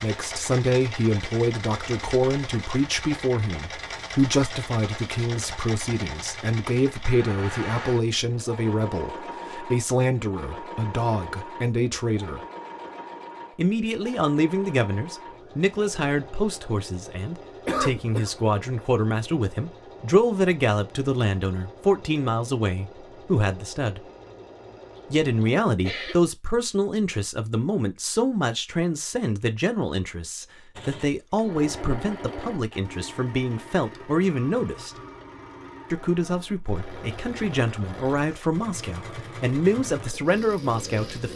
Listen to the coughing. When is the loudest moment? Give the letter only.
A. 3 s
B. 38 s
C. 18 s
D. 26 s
C.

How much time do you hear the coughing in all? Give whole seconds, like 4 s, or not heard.
2 s.